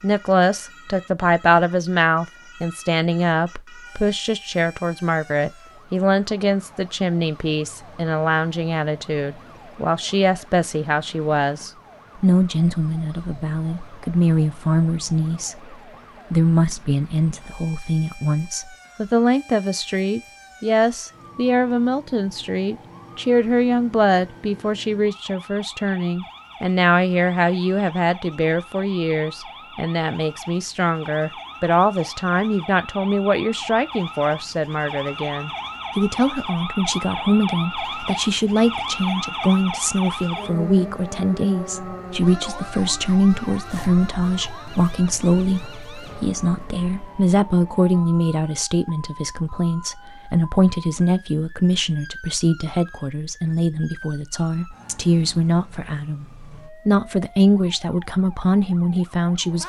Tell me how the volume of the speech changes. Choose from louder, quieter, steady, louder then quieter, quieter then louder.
steady.